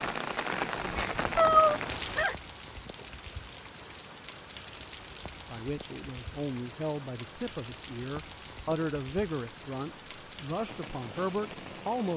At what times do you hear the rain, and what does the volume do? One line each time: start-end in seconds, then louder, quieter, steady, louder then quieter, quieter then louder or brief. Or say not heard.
0.0-12.1 quieter.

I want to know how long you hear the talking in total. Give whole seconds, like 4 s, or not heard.
7 s.